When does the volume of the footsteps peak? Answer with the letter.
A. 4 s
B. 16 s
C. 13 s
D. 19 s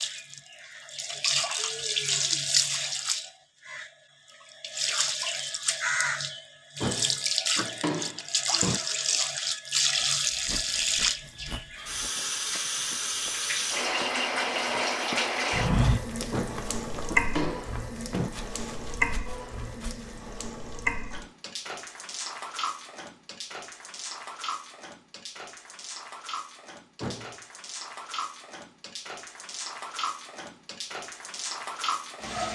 B.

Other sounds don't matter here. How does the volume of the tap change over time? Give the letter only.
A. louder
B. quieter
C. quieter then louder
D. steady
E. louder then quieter
B.